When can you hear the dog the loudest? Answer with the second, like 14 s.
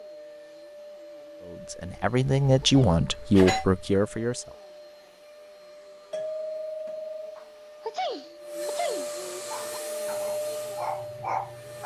11 s.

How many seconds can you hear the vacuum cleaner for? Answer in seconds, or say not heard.
12 s.